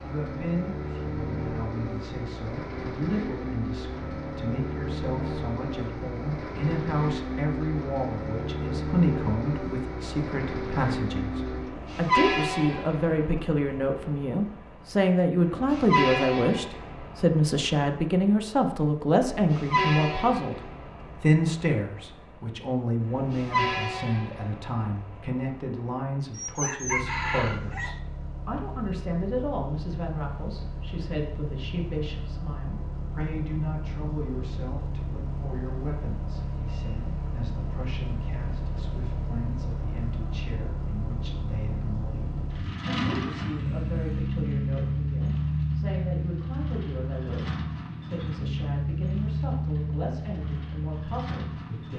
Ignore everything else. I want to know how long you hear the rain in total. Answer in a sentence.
The rain can't be heard in this clip.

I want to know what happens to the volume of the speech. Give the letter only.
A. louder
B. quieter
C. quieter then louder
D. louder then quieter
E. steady
D.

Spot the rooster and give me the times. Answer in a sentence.
You can hear the rooster from 26.3 to 27.9 s.